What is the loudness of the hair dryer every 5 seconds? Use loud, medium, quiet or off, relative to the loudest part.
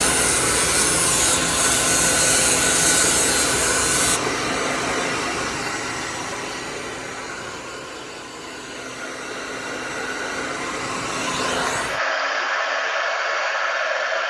loud, medium, loud.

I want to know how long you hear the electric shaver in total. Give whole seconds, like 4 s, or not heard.
4 s.